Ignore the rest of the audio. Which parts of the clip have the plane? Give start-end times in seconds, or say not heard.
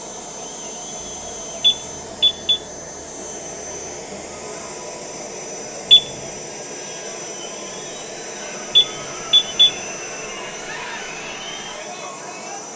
0.0-12.7.